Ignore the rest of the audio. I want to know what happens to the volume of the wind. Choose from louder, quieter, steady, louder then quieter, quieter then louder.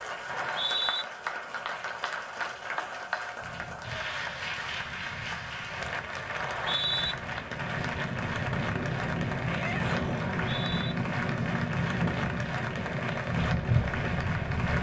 louder.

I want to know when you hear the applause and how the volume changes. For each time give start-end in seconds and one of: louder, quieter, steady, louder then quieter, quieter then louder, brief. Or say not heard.
0.0-14.7 steady.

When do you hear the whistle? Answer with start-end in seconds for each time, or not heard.
0.2-1.1, 6.3-7.2, 10.4-10.9.